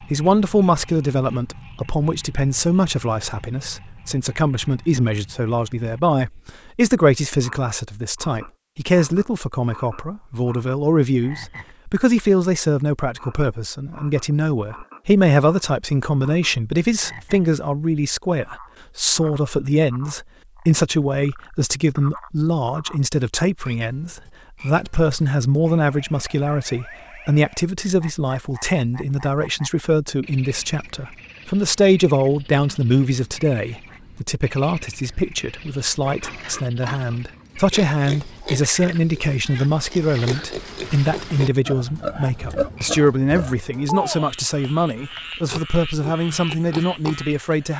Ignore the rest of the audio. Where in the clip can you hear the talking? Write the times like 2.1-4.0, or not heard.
0.0-47.7.